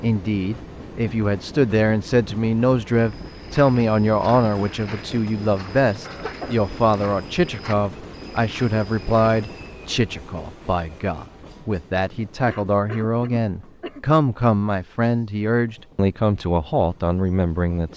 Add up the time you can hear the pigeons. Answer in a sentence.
The pigeons can't be heard in this clip.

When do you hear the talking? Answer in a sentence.
The talking can be heard from 0.0 to 17.9 s.